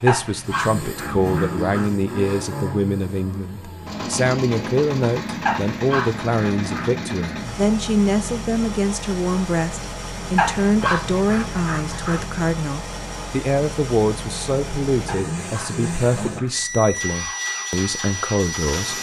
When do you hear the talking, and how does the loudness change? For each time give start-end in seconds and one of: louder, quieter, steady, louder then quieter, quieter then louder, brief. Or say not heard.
0.0-18.9 steady.